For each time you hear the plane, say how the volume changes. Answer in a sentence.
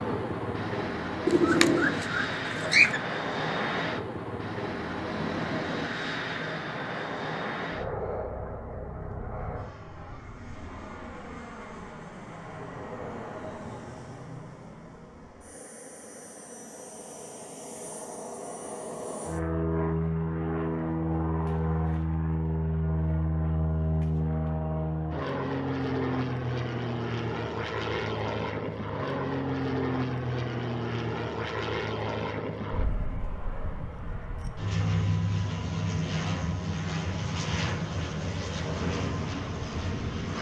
You can hear the plane from 0.0 to 40.3 s, getting quieter then louder.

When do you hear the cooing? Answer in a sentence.
You can hear the cooing from 1.2 to 3.0 s.